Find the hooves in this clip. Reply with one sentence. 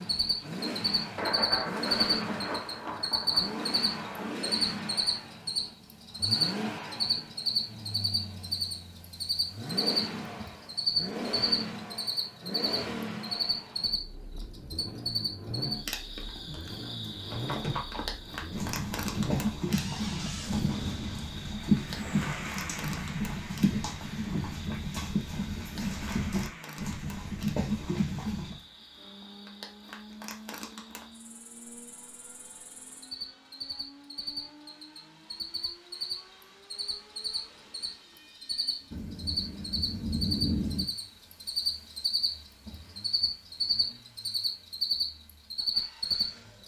You can hear the hooves from 17.3 to 28.6 s.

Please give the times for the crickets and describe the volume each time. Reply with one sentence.
You can hear the crickets from 0.0 to 46.6 s, getting quieter then louder.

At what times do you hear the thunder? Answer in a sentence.
The thunder can be heard from 1.1 to 4.4 s and from 38.9 to 40.9 s.